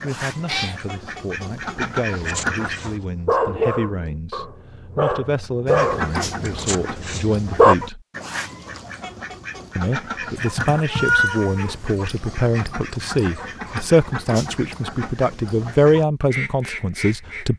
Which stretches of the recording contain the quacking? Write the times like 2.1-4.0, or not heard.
0.0-3.0, 5.7-17.5.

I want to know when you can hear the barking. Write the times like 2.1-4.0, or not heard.
2.2-7.8.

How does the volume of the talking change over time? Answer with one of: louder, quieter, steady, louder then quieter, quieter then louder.
louder.